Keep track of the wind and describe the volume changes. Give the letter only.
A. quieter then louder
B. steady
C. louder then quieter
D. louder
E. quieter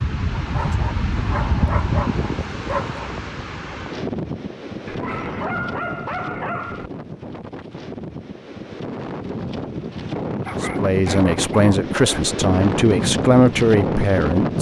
A.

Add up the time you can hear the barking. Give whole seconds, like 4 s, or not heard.
7 s.